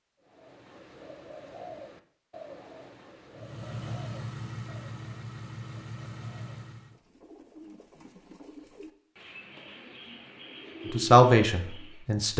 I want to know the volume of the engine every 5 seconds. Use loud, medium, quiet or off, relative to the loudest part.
loud, loud, off.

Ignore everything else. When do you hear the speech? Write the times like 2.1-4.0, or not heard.
10.9-12.3.